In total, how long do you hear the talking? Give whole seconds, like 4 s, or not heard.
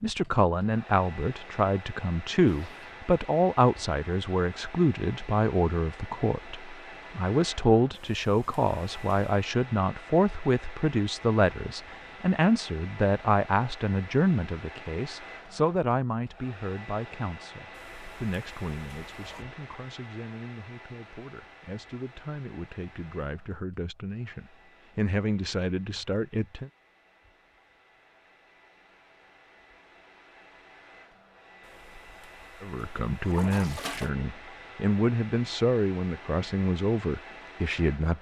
32 s.